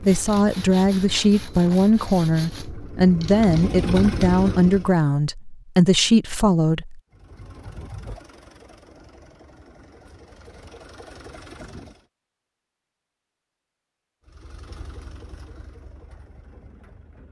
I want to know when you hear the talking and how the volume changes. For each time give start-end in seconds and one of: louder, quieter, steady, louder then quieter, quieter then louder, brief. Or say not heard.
0.0-7.0 steady.